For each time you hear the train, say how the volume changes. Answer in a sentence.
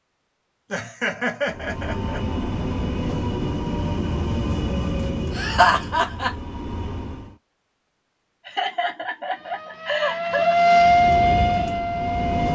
You can hear the train from 1.4 to 7.3 s, getting quieter; and briefly from 10.8 to 12.4 s.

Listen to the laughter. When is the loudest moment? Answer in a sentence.
The loudest moment of the laughter is at 6 seconds.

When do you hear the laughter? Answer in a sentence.
You can hear the laughter from 0.7 to 2.2 s, from 5.3 to 6.3 s and from 8.4 to 10.6 s.